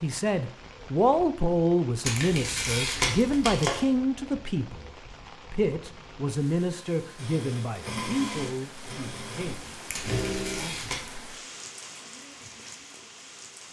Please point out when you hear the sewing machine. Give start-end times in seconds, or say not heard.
7.2-10.7.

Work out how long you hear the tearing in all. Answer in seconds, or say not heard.
3 s.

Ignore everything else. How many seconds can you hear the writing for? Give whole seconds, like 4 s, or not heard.
not heard.